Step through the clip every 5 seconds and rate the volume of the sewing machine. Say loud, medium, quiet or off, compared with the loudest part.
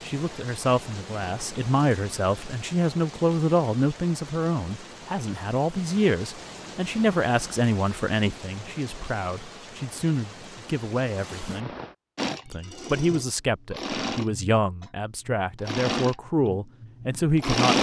off, off, medium, loud.